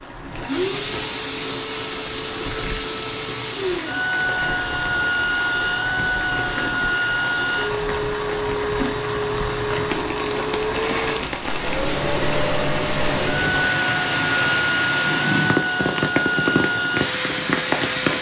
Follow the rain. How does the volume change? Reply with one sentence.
The loudness of the rain goes up.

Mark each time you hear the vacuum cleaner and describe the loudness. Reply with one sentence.
The vacuum cleaner can be heard from 0.0 to 18.1 s, at a steady volume.